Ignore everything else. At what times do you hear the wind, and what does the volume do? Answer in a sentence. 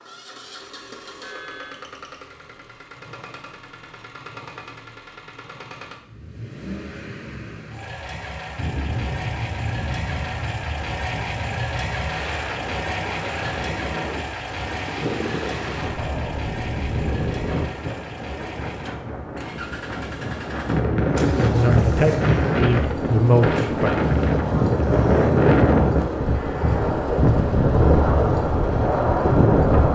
You can hear the wind from 8.6 to 29.9 s, getting louder.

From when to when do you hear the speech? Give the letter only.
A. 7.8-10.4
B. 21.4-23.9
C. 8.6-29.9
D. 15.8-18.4
B.